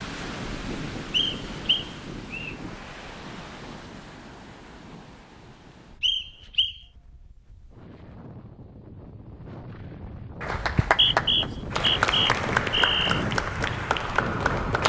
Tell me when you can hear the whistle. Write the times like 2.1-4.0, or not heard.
1.1-2.5, 6.0-6.8, 10.6-13.2.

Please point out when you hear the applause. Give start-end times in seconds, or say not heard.
10.4-14.8.